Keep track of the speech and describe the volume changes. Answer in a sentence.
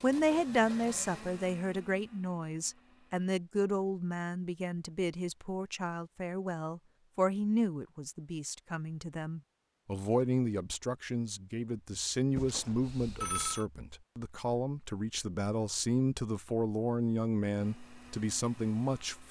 The loudness of the speech stays about the same.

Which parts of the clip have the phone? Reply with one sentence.
The phone can be heard from 12.3 to 13.7 s.